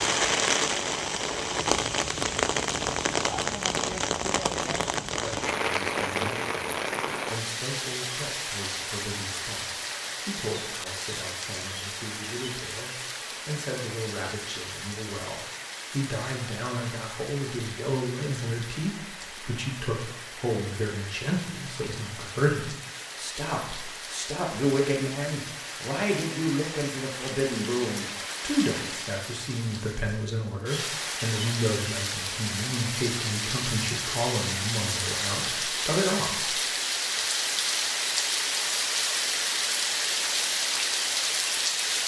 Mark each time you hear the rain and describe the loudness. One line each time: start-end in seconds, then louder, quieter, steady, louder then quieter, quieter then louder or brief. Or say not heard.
0.0-42.0 quieter then louder.